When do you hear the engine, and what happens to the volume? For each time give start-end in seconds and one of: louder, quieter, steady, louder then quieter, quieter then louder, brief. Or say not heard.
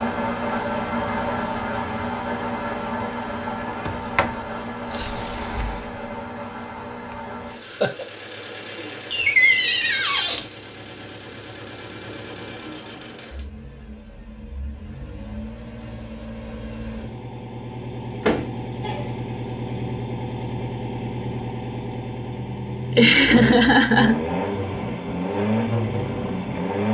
0.0-26.8 quieter then louder.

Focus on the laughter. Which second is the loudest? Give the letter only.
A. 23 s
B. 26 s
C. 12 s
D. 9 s
A.